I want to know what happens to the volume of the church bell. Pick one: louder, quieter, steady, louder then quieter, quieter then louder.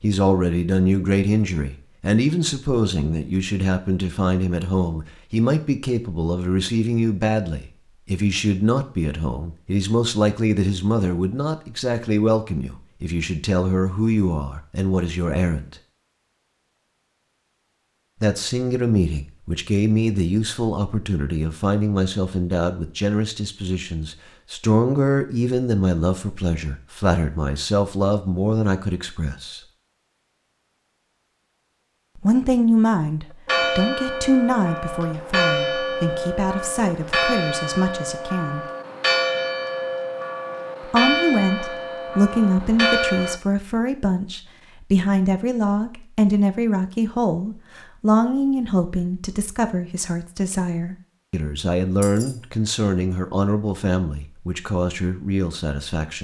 steady.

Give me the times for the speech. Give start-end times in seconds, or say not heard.
0.0-15.8, 18.2-29.6, 32.1-38.6, 40.8-56.1.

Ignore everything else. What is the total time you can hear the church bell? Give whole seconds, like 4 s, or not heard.
10 s.